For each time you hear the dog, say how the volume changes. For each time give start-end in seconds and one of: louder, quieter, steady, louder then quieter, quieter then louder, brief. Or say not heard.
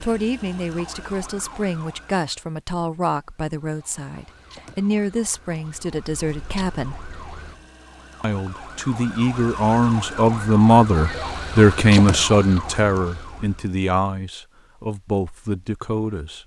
not heard.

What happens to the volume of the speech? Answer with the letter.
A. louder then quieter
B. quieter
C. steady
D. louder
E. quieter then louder
A.